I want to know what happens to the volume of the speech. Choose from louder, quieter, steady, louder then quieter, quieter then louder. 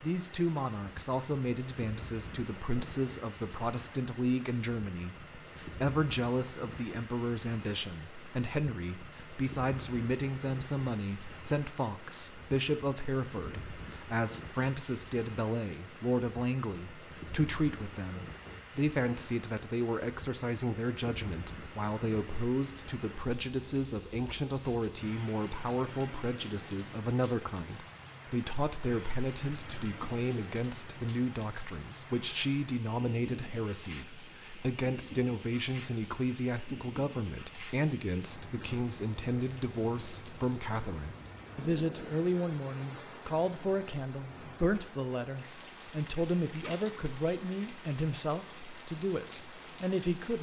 steady.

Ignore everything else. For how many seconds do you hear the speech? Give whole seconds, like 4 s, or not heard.
50 s.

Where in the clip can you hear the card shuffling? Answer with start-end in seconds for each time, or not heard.
not heard.